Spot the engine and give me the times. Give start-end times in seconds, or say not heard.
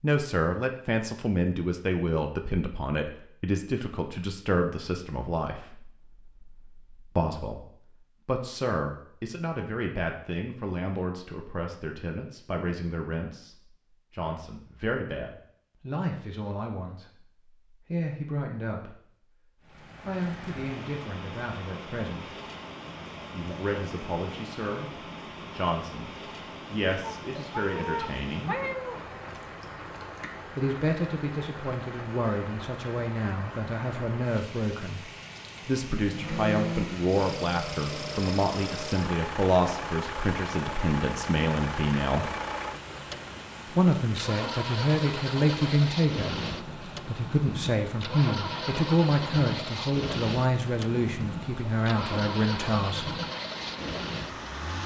36.0-54.8.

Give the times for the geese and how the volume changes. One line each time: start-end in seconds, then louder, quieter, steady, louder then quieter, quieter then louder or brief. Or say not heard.
not heard.